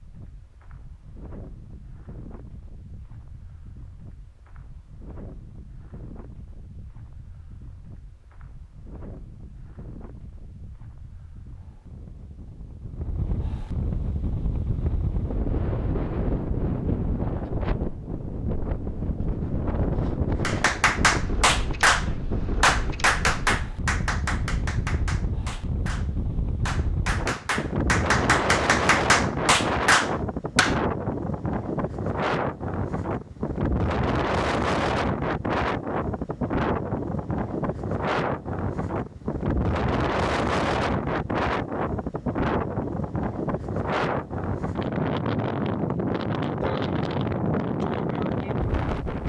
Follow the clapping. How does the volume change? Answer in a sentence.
The volume of the clapping goes down, then up.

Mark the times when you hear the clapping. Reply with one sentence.
The clapping can be heard from 20.4 to 30.8 s.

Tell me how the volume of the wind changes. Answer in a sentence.
The volume of the wind goes up.